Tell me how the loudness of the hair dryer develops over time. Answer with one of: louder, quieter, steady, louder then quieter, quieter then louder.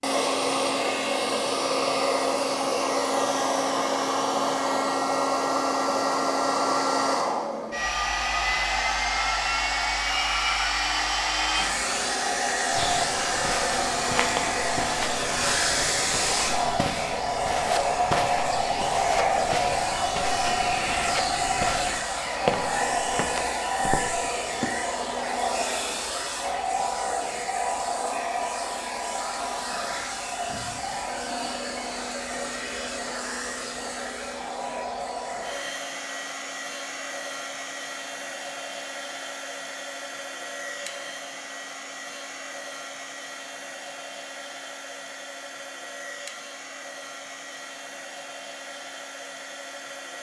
quieter.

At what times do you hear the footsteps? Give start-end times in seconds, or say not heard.
12.7-24.8.